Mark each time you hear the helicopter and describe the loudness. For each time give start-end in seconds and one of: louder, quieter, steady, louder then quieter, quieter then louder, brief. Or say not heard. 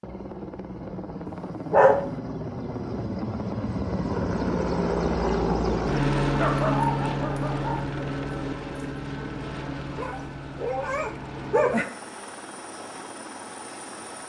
0.0-14.2 louder then quieter.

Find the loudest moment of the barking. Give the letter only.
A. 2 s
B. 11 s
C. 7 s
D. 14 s
A.